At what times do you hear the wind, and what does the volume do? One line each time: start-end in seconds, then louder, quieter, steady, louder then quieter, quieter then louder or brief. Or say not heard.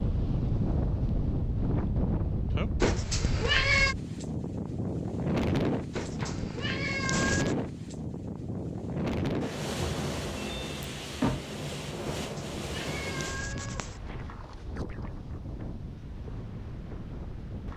0.0-17.7 quieter.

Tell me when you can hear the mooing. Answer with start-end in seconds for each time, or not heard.
not heard.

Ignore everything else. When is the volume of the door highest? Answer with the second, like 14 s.
11 s.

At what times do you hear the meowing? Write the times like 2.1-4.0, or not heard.
2.8-4.0, 5.9-7.5, 12.2-13.9.